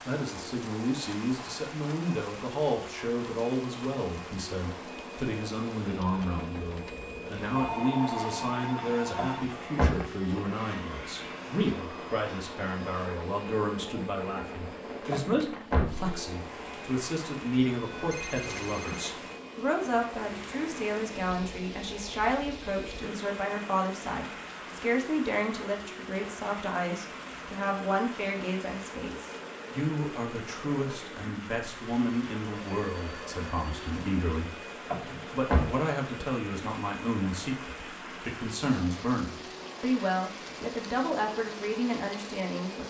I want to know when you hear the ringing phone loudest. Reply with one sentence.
The volume of the ringing phone peaks at 8 seconds.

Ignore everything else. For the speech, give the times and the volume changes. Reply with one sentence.
You can hear the speech from 0.1 to 42.8 s, at a steady volume.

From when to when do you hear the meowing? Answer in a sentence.
The meowing can't be heard in this clip.